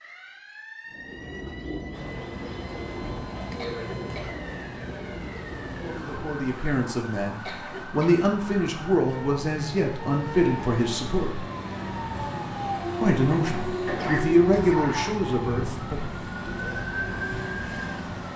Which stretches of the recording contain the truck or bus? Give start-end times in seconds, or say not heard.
1.9-18.3.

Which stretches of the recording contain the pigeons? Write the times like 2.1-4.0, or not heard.
0.9-6.5.